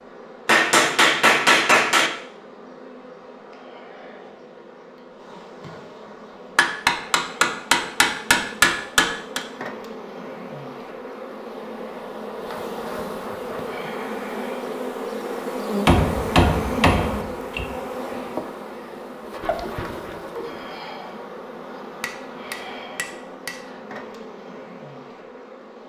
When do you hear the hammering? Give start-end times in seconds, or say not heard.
0.5-2.1, 6.5-9.4, 15.8-17.6, 22.0-23.6.